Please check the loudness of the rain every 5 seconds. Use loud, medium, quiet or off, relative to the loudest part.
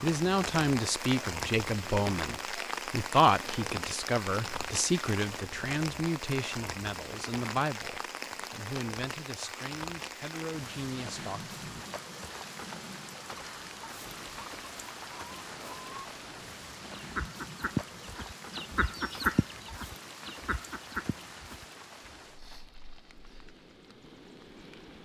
loud, loud, medium, medium, quiet.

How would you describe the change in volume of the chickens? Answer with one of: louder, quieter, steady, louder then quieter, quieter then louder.
louder then quieter.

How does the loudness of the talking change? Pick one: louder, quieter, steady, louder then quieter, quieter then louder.
quieter.